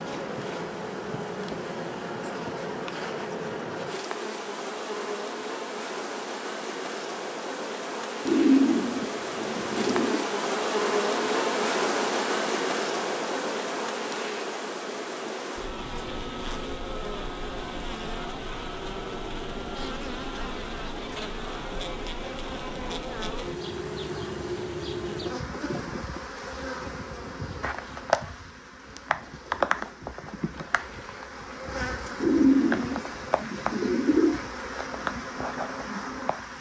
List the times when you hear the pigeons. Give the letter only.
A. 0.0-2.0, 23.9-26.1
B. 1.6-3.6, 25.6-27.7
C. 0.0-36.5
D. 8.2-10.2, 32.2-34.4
D.